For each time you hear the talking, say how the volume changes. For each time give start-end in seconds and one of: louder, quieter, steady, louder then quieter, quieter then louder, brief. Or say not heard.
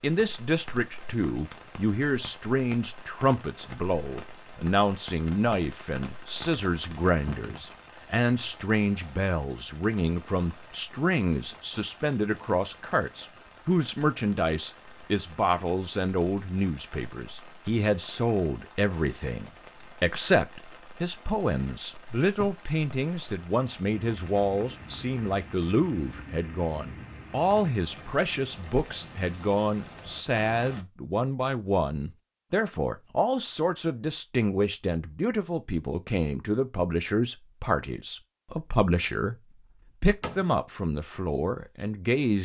0.0-39.4 steady
40.0-42.4 brief.